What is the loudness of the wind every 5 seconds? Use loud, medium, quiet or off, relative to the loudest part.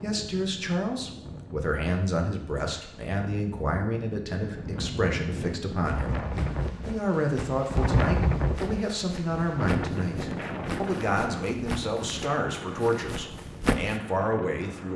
medium, loud, medium.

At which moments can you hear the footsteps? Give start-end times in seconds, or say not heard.
5.8-14.0.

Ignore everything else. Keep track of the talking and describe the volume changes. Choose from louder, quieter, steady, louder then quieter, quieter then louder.
steady.